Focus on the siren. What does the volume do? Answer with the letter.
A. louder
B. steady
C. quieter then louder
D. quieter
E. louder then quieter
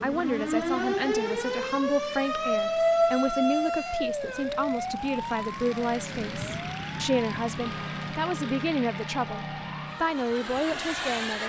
D.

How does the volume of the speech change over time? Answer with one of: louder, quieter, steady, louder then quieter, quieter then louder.
steady.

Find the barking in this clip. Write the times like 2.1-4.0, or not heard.
not heard.